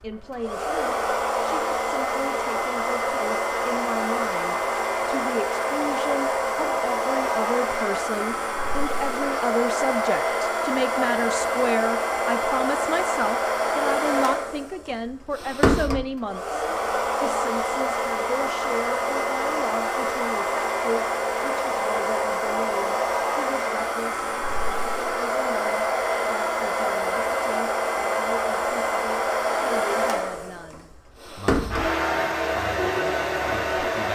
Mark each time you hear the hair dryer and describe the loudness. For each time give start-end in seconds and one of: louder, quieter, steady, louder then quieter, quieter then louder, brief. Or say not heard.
0.0-34.1 steady.